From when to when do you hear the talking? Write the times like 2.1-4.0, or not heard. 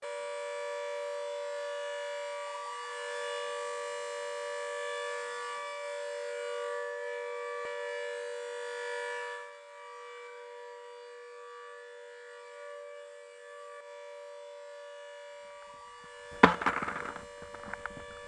not heard.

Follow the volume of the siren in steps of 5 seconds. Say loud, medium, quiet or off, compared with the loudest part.
loud, loud, medium, medium.